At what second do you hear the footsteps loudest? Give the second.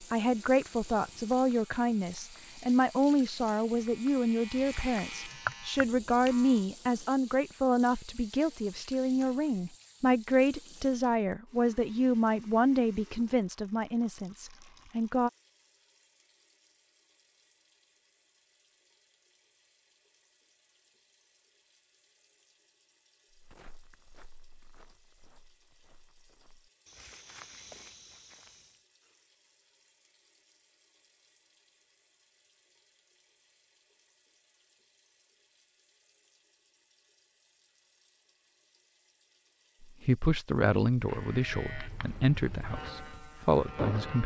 28 s.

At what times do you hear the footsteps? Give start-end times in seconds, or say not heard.
23.3-28.9.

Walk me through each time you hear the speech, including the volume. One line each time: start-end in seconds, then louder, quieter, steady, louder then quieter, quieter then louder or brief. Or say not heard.
0.0-15.3 steady
39.8-44.2 quieter then louder.